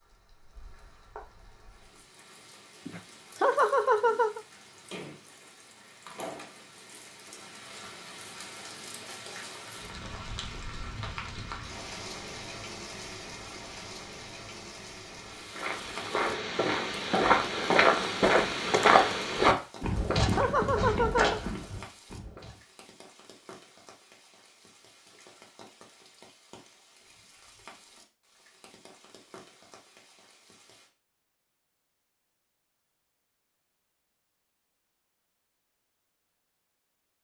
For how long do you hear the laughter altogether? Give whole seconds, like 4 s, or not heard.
3 s.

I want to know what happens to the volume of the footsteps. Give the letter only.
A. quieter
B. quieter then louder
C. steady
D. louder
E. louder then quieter
E.